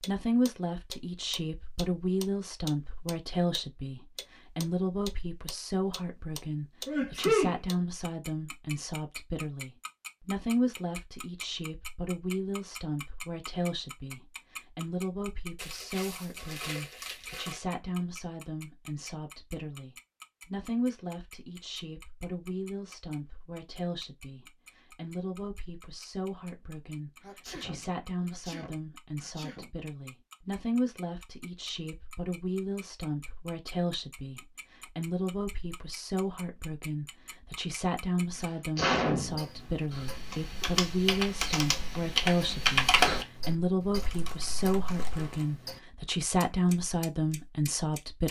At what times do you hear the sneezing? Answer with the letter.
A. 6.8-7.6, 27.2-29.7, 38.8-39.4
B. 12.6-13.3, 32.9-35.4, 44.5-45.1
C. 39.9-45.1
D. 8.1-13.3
A.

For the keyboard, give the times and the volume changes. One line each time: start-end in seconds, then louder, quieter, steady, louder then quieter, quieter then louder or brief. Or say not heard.
39.9-45.1 louder then quieter.